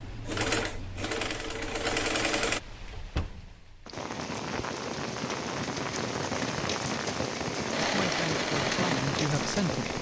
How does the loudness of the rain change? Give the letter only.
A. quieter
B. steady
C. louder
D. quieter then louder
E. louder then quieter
C.